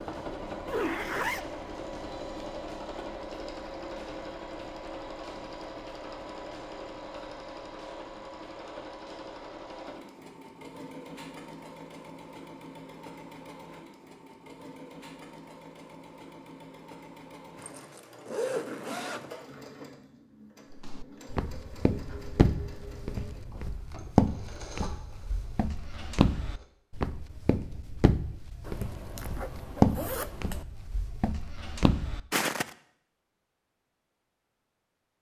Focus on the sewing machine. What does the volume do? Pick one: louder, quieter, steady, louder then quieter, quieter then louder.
quieter.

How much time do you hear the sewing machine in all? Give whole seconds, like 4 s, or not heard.
27 s.